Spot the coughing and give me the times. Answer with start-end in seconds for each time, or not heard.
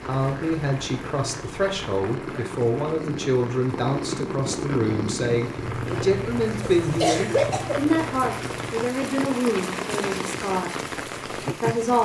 6.6-7.8.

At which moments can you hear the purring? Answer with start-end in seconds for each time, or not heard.
0.0-8.9.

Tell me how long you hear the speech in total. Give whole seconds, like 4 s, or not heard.
12 s.